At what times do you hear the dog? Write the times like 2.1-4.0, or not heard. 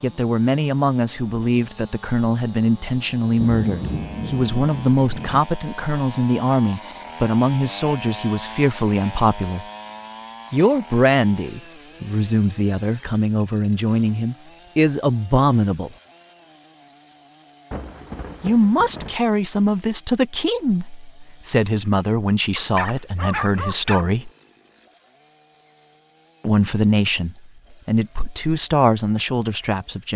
22.6-24.1.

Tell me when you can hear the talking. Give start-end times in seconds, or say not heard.
0.0-9.7, 10.5-15.9, 18.4-24.3, 26.4-30.1.